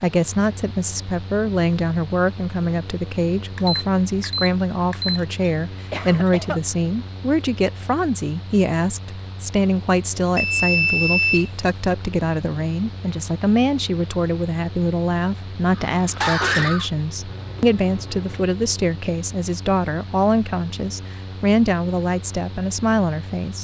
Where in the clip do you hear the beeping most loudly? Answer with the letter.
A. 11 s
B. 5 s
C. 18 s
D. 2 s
A.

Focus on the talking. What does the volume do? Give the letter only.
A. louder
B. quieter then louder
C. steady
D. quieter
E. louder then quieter
C.